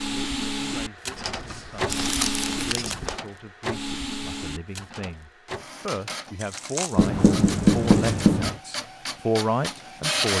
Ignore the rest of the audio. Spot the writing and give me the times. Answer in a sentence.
You can hear the writing from 1.1 to 3.1 s and from 7.0 to 8.6 s.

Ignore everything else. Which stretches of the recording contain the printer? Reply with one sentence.
The printer can be heard from 0.0 to 10.3 s.